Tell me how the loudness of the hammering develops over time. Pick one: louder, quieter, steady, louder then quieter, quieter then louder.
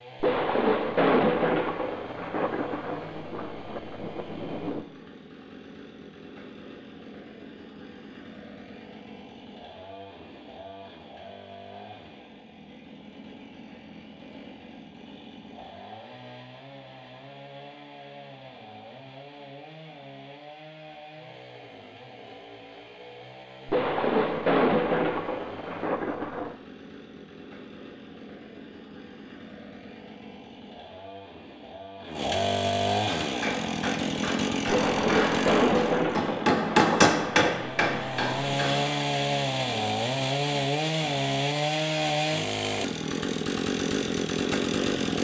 louder then quieter.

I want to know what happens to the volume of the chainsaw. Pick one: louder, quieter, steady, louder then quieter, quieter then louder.
louder.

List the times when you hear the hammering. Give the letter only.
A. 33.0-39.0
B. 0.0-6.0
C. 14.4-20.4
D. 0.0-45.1
A.